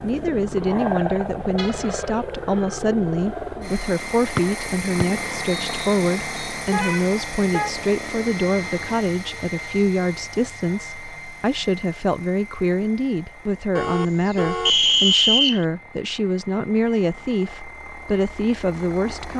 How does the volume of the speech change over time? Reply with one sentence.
The loudness of the speech stays about the same.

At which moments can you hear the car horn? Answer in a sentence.
You can hear the car horn from 1.6 to 2.0 s, from 6.7 to 7.8 s and from 13.8 to 14.8 s.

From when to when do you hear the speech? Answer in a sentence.
You can hear the speech from 0.0 to 19.3 s.